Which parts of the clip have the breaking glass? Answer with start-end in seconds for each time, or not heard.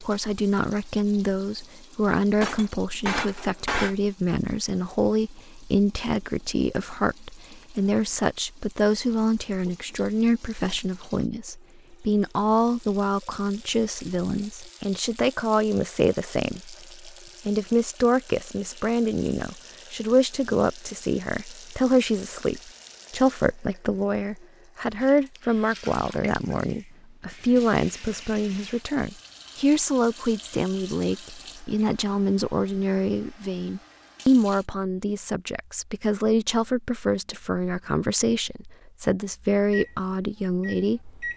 2.4-4.0.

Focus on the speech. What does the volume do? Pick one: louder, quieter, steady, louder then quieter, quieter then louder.
steady.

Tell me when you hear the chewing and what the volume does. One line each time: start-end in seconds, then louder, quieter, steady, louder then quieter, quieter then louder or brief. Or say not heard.
not heard.